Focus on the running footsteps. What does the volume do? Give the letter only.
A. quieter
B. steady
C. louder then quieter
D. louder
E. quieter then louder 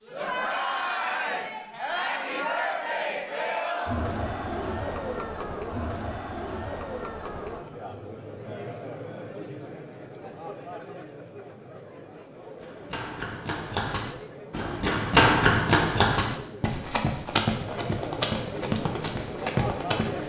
C.